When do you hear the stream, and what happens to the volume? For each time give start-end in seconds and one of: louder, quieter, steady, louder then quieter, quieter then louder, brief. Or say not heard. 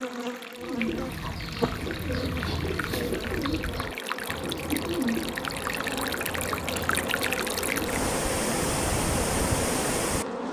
0.0-10.4 louder.